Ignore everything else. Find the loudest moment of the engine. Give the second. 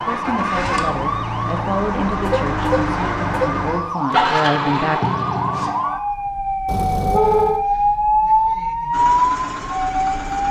5 s.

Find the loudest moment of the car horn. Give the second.
7 s.